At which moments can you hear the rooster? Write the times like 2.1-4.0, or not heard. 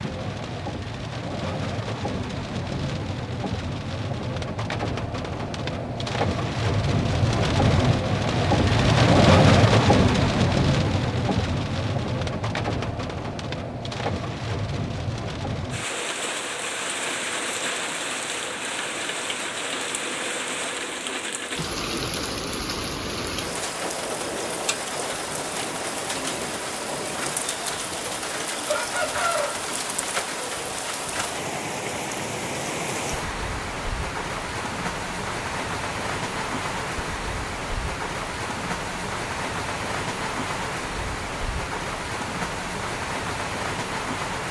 28.6-29.7.